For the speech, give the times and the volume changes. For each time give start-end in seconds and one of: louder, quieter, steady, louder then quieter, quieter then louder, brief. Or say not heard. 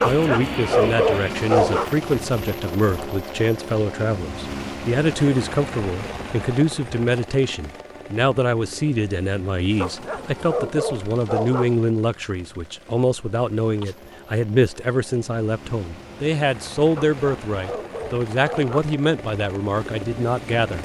0.0-20.8 steady.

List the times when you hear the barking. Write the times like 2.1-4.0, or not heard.
0.0-1.9, 9.8-11.8, 16.9-18.9.